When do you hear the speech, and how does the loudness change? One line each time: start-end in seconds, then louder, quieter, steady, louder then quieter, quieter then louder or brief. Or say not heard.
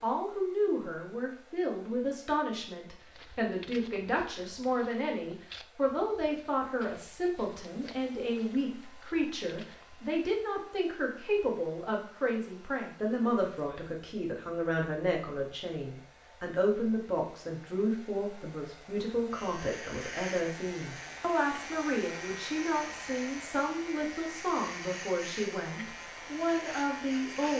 0.0-27.5 steady.